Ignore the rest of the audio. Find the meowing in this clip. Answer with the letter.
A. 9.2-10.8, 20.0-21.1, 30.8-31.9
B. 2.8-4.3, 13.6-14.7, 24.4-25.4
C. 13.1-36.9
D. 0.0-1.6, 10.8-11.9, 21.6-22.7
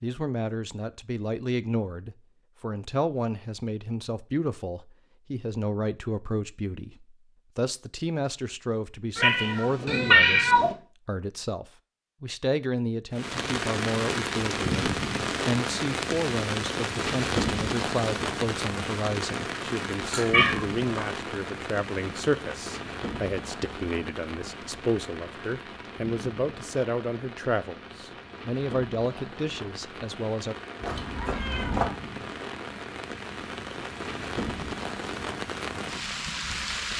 A.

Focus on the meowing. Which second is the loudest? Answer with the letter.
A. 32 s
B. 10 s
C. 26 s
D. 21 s
B.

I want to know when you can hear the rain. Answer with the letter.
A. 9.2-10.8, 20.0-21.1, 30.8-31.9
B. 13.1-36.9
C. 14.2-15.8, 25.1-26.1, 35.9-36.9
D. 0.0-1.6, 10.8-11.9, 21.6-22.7
B.